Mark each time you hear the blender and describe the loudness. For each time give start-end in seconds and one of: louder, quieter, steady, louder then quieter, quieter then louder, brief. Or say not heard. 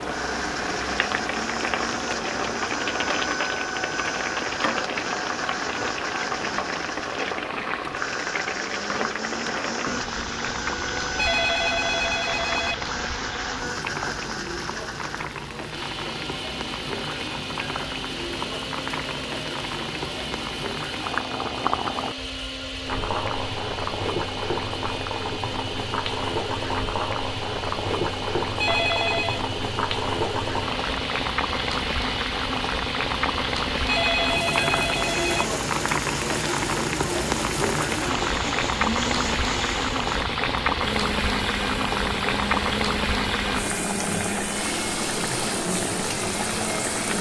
0.0-47.1 steady.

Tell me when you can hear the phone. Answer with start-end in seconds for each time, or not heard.
11.2-12.8, 28.6-29.4, 33.9-35.5.